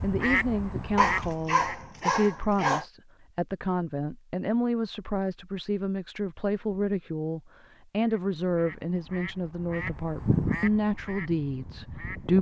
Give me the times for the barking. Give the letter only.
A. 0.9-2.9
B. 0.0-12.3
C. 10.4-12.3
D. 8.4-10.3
A.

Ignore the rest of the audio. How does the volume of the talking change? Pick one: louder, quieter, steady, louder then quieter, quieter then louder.
steady.